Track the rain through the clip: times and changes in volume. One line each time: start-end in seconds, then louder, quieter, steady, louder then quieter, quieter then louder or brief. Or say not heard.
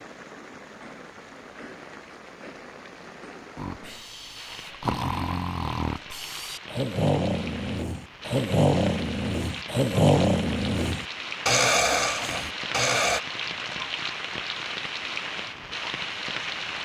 0.0-16.8 louder.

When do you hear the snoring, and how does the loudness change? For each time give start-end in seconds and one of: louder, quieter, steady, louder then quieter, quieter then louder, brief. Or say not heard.
3.5-13.2 louder.